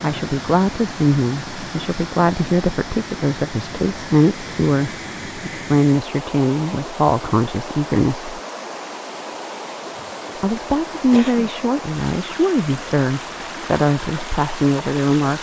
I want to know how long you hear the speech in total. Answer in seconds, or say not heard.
13 s.